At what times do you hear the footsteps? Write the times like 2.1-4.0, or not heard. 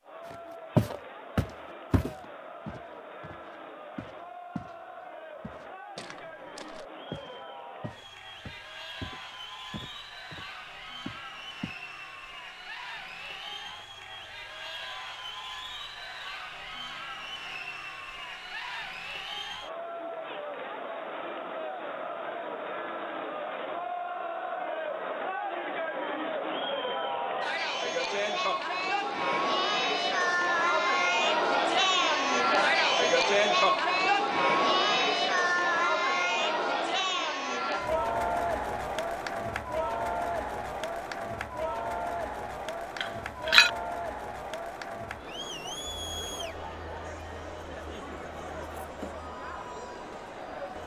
0.3-4.8, 5.4-11.8.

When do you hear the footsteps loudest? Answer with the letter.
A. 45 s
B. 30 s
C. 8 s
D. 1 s
D.